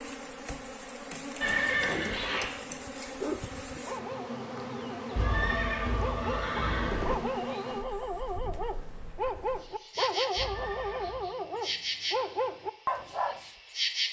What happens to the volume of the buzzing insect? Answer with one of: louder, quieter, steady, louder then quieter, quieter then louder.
steady.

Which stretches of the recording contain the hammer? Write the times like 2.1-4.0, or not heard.
not heard.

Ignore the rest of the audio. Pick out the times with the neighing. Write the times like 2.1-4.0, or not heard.
1.4-2.5, 5.2-7.2, 10.3-11.2.